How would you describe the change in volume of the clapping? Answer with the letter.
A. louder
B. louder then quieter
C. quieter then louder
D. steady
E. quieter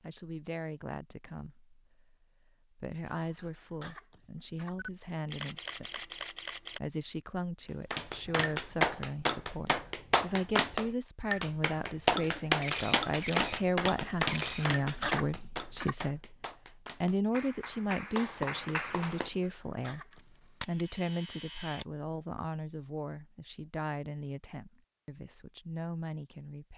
E.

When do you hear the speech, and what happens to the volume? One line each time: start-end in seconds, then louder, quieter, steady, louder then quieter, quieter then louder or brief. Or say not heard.
0.0-16.4 louder
17.0-26.7 quieter.